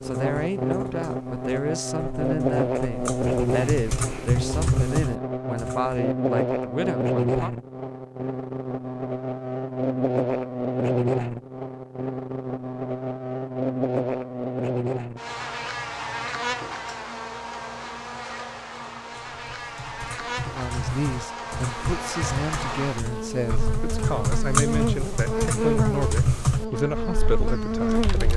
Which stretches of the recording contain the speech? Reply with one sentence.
You can hear the speech from 0.0 to 7.5 s and from 20.5 to 28.3 s.